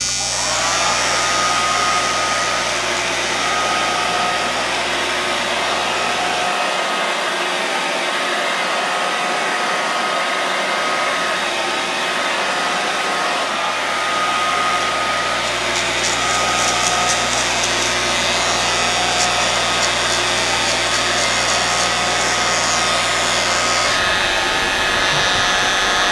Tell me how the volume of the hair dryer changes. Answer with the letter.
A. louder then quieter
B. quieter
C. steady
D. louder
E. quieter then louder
C.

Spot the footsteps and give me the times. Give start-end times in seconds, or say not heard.
not heard.